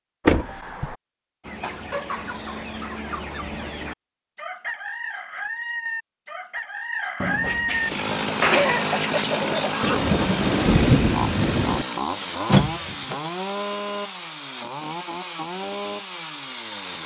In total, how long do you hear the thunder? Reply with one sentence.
The thunder can be heard for 2 seconds in total.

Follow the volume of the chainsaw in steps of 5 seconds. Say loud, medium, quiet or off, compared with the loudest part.
off, loud, loud, medium.